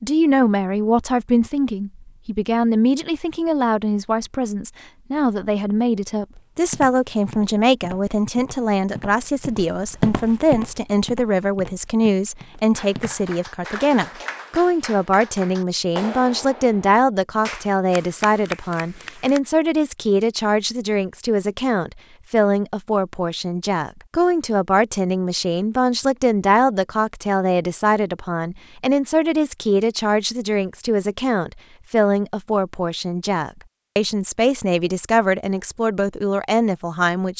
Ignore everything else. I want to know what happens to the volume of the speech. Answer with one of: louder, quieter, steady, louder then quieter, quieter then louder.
steady.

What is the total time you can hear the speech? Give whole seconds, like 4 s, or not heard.
37 s.